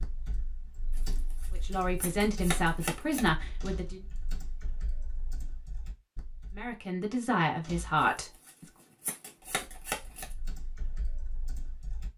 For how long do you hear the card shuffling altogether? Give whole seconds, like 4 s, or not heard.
5 s.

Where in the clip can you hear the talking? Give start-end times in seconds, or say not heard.
1.5-4.0, 6.5-8.7.